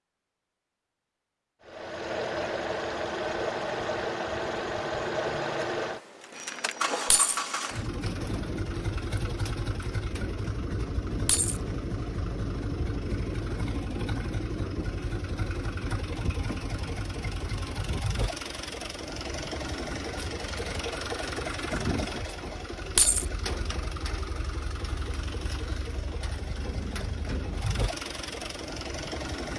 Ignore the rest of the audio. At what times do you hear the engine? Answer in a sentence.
You can hear the engine from 1.6 to 29.5 s.